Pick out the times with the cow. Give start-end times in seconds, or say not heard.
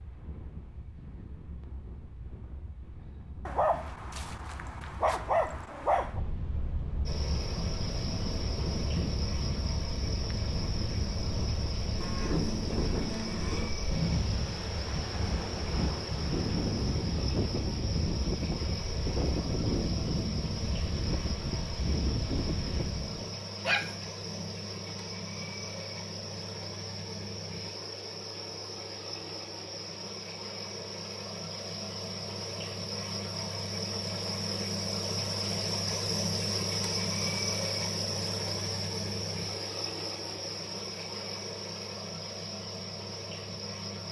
12.0-13.7.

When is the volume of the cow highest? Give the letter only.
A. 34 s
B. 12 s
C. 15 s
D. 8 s
B.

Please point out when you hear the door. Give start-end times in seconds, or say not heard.
not heard.